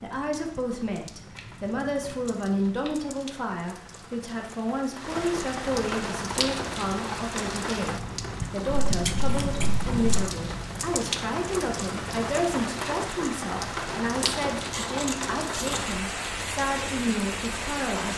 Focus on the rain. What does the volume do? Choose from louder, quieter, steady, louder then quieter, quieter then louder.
louder.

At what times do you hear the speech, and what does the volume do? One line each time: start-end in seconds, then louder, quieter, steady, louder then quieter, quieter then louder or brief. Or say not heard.
0.0-18.1 steady.